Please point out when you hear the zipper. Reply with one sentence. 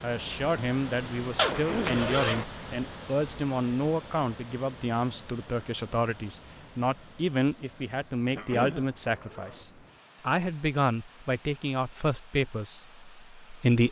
You can hear the zipper from 1.4 to 2.5 s and from 8.8 to 9.7 s.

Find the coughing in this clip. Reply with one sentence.
The coughing can be heard from 1.5 to 2.0 s and from 8.3 to 8.8 s.